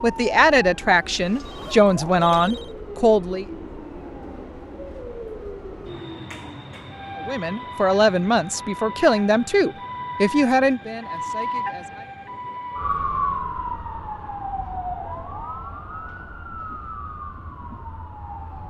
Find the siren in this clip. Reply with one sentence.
The siren can be heard from 0.0 to 18.6 s.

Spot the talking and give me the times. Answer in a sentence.
The talking can be heard from 0.0 to 3.5 s and from 7.2 to 12.2 s.